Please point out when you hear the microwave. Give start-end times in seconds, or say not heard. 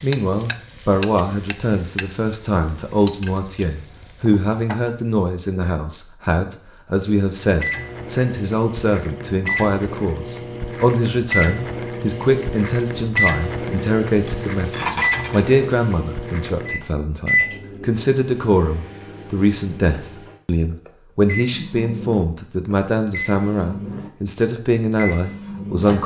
7.4-26.0.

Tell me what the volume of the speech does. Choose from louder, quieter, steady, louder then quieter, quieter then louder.
steady.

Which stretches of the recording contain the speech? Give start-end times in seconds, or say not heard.
0.0-26.0.